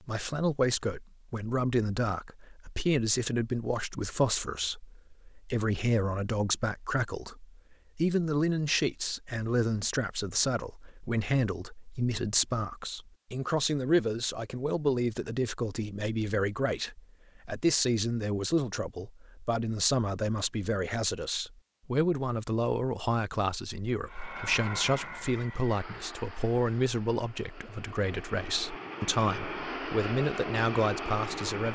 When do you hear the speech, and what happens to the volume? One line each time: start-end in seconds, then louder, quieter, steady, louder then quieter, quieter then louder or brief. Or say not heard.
0.1-31.7 steady.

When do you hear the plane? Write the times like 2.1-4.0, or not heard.
24.1-31.7.